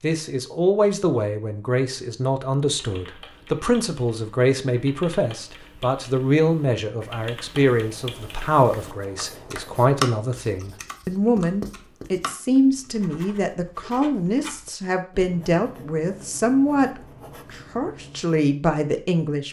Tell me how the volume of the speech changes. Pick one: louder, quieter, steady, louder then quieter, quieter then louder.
steady.